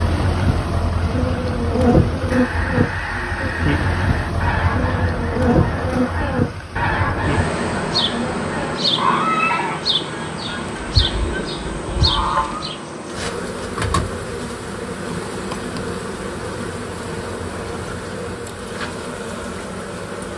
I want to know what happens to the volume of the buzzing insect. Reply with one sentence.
The volume of the buzzing insect goes down.